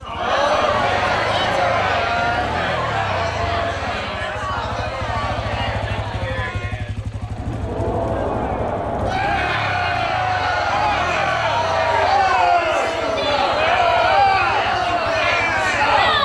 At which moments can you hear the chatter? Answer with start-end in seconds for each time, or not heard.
0.0-16.2.